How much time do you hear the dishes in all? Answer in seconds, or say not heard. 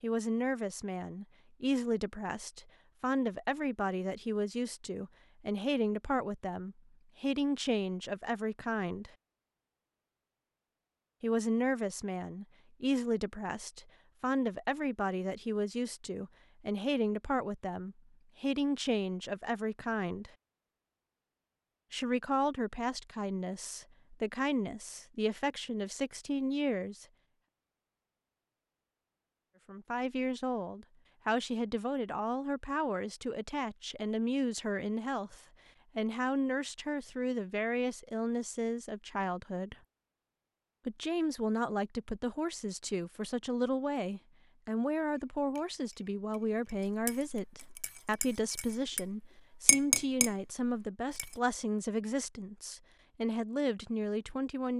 6 s.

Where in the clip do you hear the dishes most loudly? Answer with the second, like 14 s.
50 s.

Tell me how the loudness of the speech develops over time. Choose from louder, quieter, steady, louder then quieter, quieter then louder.
steady.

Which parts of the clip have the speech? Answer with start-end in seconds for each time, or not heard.
0.0-9.1, 11.2-20.3, 21.9-27.1, 29.6-39.8, 40.9-54.7.